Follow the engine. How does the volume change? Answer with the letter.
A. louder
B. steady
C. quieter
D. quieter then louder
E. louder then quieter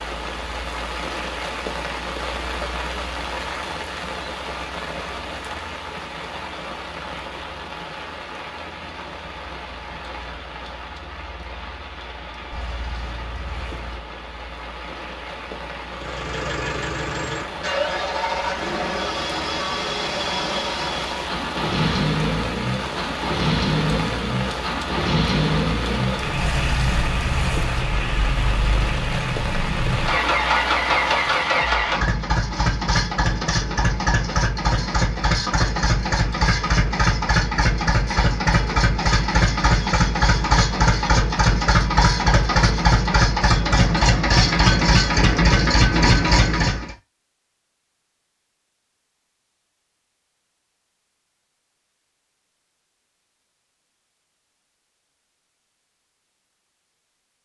A.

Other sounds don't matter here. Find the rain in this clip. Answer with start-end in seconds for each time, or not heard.
0.0-31.6.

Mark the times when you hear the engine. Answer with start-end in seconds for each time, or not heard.
15.9-47.0.